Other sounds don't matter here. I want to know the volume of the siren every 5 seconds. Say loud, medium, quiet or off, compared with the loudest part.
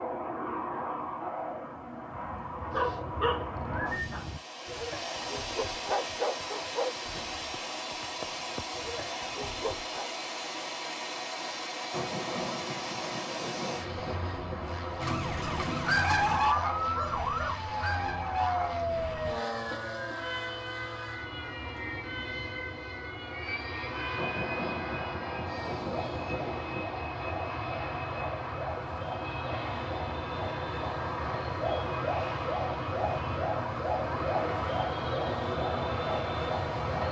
off, off, off, loud, medium, medium, loud, loud.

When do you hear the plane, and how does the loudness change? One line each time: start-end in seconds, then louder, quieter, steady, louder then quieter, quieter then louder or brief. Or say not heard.
0.0-37.0 steady.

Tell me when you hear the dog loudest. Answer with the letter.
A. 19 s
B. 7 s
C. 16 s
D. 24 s
C.